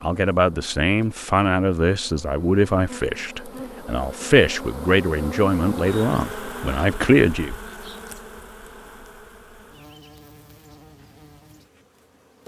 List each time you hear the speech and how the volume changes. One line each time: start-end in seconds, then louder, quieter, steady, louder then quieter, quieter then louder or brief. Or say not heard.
0.0-7.5 steady.